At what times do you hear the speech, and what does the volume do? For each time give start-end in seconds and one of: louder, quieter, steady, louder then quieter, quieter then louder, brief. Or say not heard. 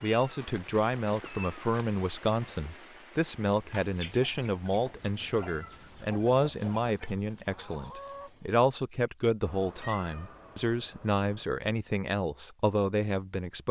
0.0-13.6 steady.